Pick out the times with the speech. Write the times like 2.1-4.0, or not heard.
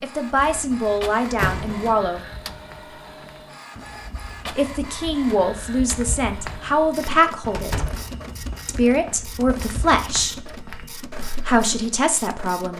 0.0-2.2, 4.5-7.8, 8.7-10.5, 11.4-12.7.